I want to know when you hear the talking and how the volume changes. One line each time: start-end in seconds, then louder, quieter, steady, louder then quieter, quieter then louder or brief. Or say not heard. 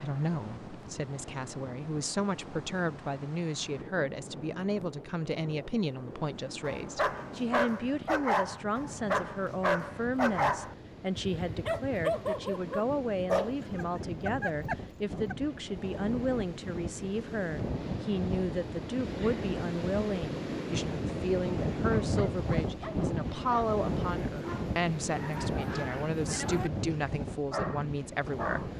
0.0-28.7 steady.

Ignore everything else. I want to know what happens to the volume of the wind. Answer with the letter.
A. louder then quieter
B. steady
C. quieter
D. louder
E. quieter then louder
D.